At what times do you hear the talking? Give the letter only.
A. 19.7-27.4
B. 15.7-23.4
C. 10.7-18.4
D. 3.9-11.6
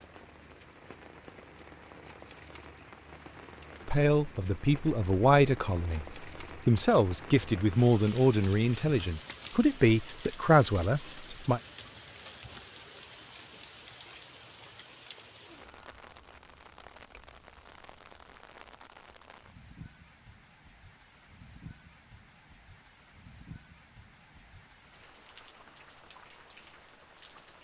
D.